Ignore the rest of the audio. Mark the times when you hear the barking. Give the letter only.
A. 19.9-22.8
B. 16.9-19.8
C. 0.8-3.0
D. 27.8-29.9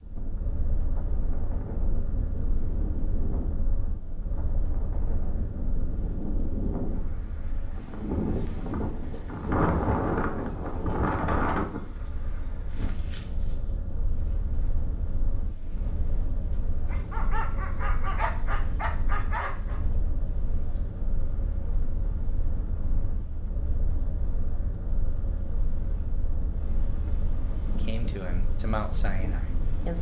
B.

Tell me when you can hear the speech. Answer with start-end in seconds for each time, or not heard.
27.8-29.9.